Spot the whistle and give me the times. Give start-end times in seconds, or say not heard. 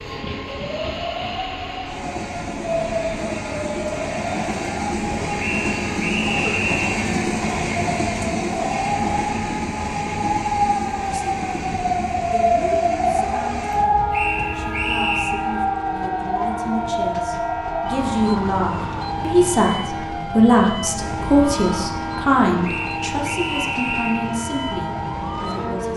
5.3-6.9, 14.1-15.4, 22.6-24.3.